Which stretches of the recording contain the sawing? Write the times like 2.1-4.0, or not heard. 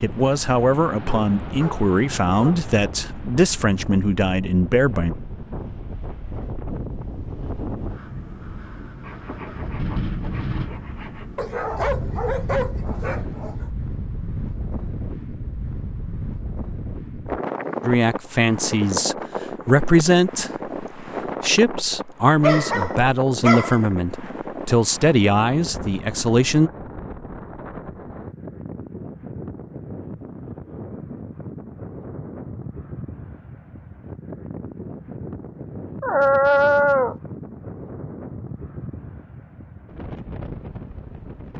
9.0-11.3.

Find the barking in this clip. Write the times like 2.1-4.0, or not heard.
1.1-2.8, 11.3-13.7, 22.4-23.8, 36.0-37.1.